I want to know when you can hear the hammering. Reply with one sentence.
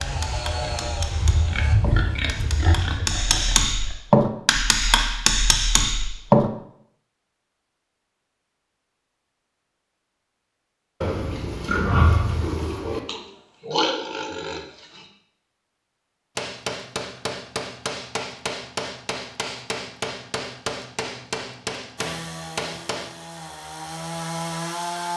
The hammering can be heard from 0.0 to 6.5 s and from 16.4 to 23.1 s.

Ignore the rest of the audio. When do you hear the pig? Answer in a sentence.
You can hear the pig from 0.0 to 4.0 s and from 11.0 to 15.1 s.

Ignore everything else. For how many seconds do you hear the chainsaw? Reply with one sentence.
You can hear the chainsaw for 5 seconds altogether.